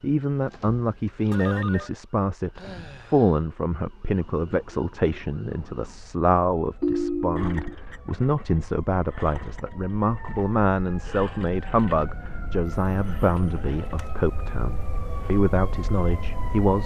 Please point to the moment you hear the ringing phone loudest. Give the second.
7 s.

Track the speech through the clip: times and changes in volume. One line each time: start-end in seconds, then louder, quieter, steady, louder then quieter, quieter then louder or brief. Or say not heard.
0.0-16.8 steady.